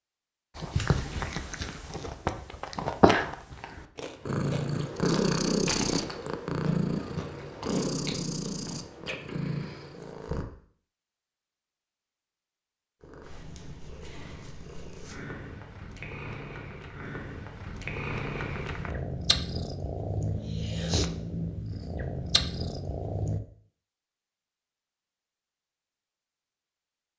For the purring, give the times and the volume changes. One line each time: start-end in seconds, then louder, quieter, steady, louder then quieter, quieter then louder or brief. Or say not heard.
4.2-10.4 quieter
13.0-23.4 louder.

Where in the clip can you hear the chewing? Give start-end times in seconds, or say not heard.
0.6-9.2.